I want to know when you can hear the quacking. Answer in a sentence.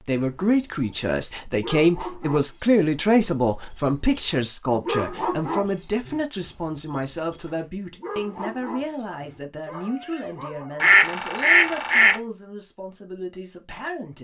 The quacking can be heard from 10.8 to 12.2 s.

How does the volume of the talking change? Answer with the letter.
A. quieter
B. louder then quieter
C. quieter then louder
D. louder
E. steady
A.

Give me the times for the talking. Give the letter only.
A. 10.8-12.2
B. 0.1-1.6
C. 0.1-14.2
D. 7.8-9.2
C.